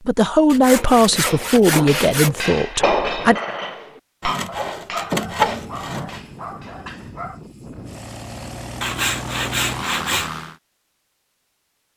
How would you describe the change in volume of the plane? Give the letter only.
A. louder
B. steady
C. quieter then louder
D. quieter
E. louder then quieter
A.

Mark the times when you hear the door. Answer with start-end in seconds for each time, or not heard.
not heard.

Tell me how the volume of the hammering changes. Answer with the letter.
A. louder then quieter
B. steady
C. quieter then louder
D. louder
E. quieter
A.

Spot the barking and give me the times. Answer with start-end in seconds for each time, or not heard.
4.7-7.4.